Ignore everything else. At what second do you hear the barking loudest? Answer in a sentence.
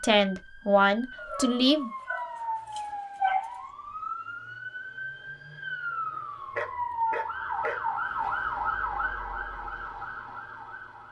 The volume of the barking peaks at 3 seconds.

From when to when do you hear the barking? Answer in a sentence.
You can hear the barking from 1.2 to 3.6 s and from 6.2 to 8.6 s.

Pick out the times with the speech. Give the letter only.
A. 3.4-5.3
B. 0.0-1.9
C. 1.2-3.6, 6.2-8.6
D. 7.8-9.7
B.